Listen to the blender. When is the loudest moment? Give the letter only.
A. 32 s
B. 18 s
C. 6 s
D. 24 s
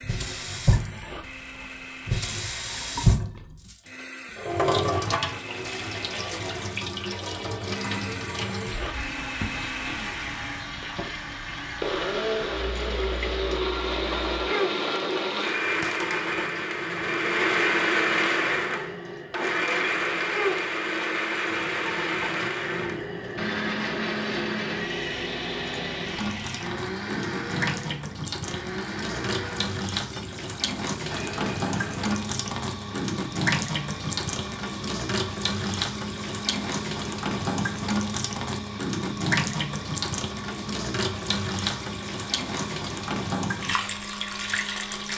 B.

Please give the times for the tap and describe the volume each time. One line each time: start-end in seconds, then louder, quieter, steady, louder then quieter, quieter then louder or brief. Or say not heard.
0.0-45.1 quieter then louder.